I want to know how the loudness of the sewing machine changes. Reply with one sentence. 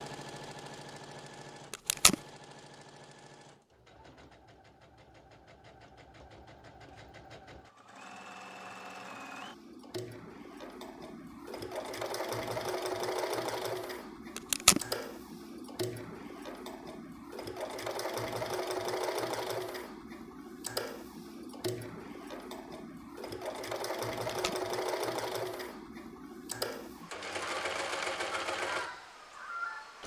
The volume of the sewing machine goes up.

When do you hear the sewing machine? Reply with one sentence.
The sewing machine can be heard from 0.0 to 30.0 s.